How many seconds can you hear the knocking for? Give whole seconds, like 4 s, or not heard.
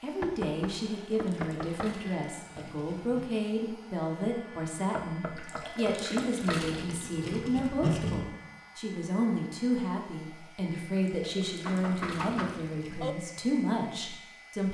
5 s.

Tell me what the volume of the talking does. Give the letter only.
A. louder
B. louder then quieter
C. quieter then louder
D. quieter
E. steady
E.